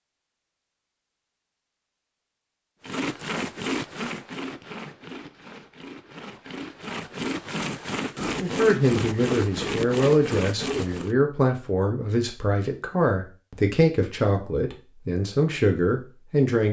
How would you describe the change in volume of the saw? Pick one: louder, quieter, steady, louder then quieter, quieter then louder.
quieter then louder.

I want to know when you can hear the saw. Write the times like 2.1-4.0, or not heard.
2.8-11.2.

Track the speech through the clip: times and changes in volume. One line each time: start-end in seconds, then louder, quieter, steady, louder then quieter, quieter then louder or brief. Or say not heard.
8.3-16.6 steady.